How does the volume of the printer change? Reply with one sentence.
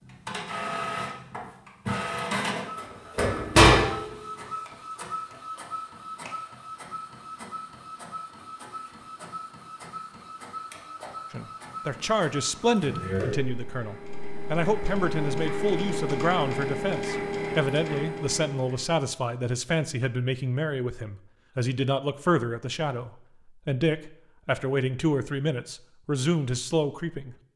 The volume of the printer goes down, then up.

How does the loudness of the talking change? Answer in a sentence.
The loudness of the talking stays about the same.